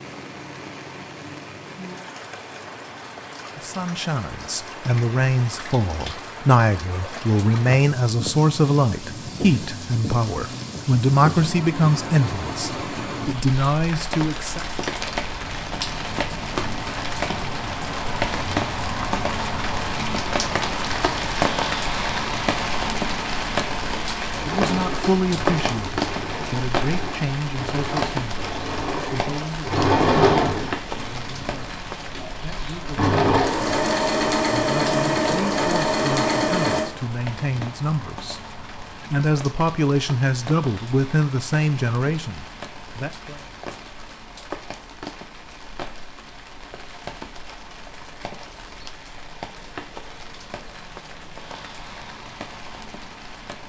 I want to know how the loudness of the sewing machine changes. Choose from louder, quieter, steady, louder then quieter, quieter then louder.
louder.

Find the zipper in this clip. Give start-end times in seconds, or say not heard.
not heard.